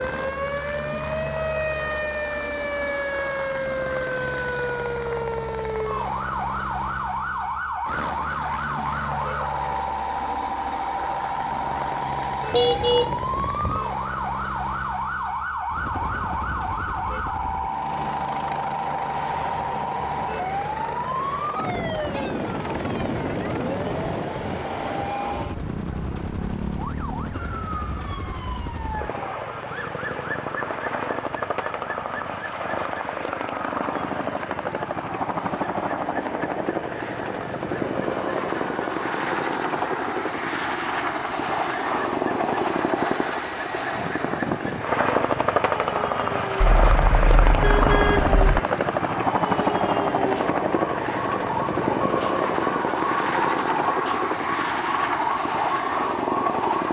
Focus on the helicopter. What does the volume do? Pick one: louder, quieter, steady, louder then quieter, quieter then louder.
louder.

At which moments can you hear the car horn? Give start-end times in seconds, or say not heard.
12.5-13.8, 46.6-48.6.